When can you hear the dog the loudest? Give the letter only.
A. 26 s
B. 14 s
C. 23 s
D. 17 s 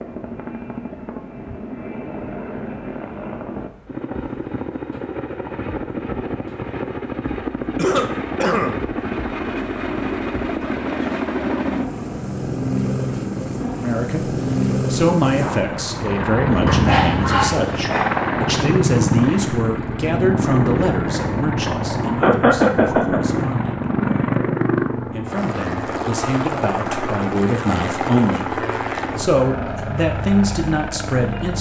D.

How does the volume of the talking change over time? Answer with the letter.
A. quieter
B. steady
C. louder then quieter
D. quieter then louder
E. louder
D.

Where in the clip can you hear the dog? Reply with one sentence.
The dog can be heard from 16.6 to 18.6 s.